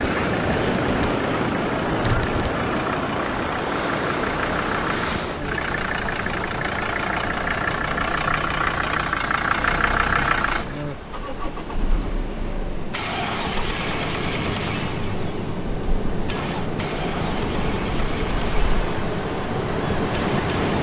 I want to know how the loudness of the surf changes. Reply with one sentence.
The loudness of the surf goes down, then up.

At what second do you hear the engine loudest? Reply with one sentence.
The volume of the engine peaks at 10 seconds.